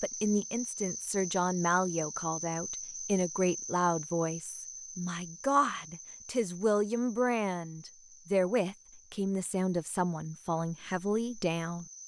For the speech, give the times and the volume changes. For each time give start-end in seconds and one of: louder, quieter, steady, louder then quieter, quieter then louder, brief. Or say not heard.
0.0-11.8 steady.